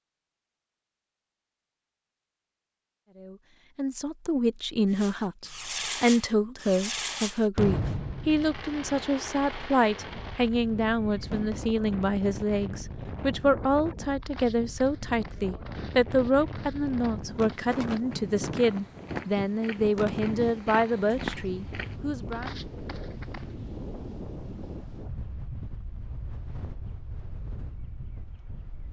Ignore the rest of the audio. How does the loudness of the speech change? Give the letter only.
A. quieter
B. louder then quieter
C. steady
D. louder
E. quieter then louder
C.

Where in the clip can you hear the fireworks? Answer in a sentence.
The fireworks can be heard from 4.9 to 11.7 s.